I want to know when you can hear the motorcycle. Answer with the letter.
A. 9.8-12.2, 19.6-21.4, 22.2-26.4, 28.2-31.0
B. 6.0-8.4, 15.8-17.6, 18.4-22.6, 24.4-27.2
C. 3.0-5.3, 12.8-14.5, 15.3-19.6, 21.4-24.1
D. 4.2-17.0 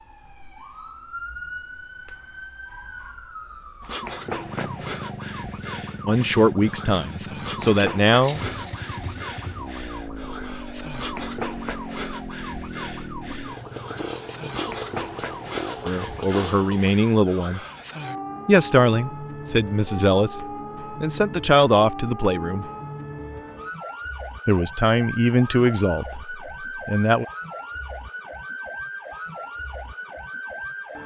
D.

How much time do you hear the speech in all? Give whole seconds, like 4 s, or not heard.
11 s.